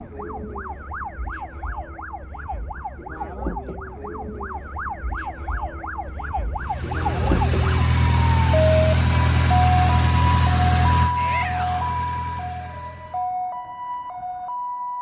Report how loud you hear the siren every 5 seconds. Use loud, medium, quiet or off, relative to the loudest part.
medium, loud, loud.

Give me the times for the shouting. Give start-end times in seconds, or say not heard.
11.2-12.0.